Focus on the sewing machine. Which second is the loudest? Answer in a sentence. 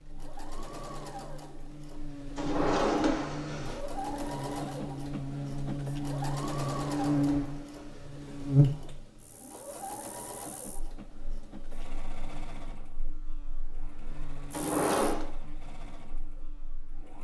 The volume of the sewing machine peaks at 7 seconds.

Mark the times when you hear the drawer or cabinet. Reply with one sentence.
The drawer or cabinet can be heard from 2.4 to 3.8 s, from 6.8 to 8.1 s and from 14.5 to 15.2 s.